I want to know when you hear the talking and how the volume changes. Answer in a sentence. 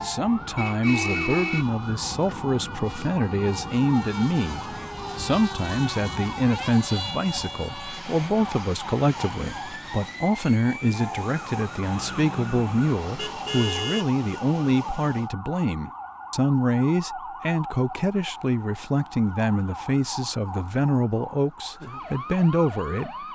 You can hear the talking from 0.0 to 23.1 s, at a steady volume.